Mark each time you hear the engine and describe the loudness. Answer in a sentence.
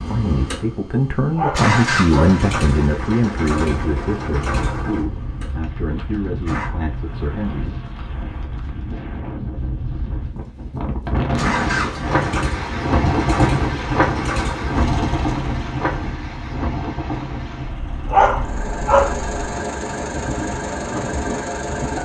You can hear the engine from 0.0 to 6.7 s, getting louder then quieter; and from 11.3 to 22.0 s, getting quieter then louder.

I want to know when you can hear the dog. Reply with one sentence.
The dog can be heard from 1.4 to 2.4 s and from 18.1 to 19.1 s.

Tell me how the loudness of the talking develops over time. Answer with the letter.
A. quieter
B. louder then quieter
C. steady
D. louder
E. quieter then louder
A.